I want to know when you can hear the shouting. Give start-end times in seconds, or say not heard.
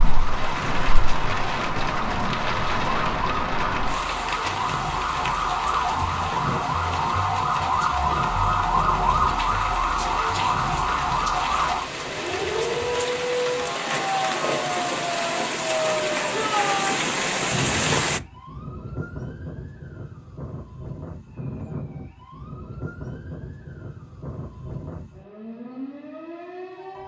16.3-17.0.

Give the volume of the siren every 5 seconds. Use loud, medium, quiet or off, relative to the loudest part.
medium, loud, loud, medium, quiet, quiet.